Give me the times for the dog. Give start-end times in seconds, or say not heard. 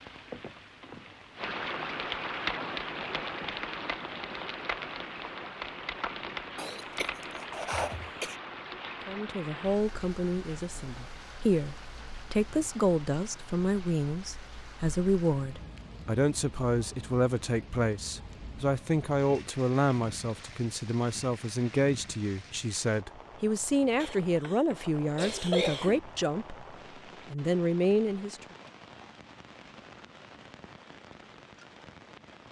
not heard.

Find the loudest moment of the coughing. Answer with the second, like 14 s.
26 s.